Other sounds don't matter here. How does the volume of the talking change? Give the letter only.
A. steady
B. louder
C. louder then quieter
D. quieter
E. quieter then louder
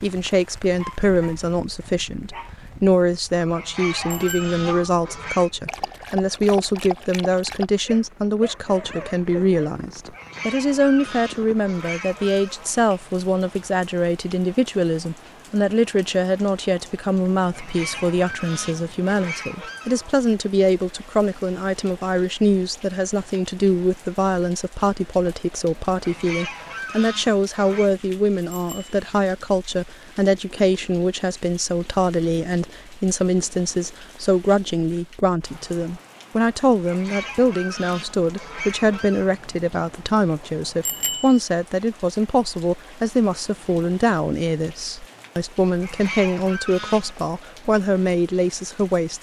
A.